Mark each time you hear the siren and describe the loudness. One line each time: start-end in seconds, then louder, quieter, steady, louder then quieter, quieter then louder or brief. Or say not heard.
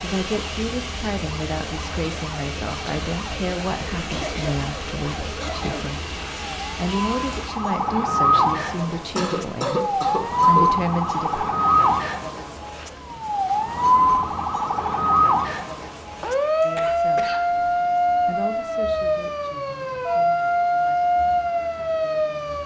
0.0-22.6 louder.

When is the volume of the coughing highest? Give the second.
10 s.